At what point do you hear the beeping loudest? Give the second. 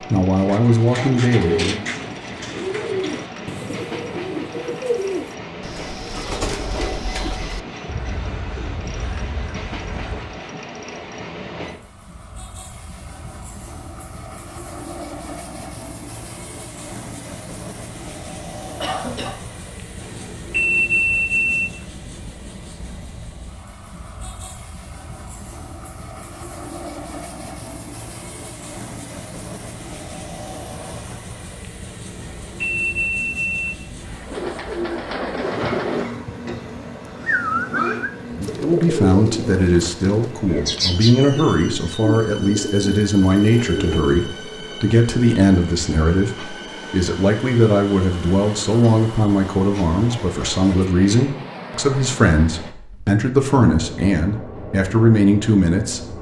21 s.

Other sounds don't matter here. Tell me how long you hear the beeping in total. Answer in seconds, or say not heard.
4 s.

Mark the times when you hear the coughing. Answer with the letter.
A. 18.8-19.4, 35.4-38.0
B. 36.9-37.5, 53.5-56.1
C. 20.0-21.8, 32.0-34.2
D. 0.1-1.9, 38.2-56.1
A.